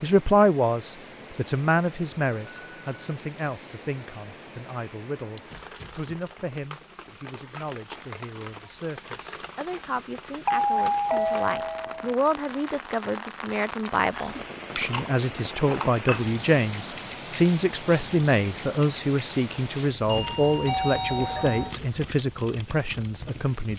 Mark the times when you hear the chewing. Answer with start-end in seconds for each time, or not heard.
13.8-16.2.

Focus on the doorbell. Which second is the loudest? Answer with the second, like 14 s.
11 s.